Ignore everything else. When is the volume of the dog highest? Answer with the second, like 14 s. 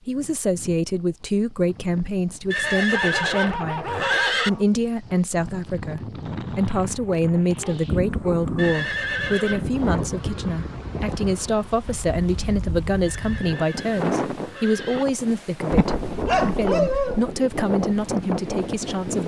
17 s.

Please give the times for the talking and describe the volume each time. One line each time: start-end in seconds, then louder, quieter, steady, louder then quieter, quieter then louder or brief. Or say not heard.
0.1-19.2 steady.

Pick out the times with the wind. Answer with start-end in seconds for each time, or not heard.
0.0-19.2.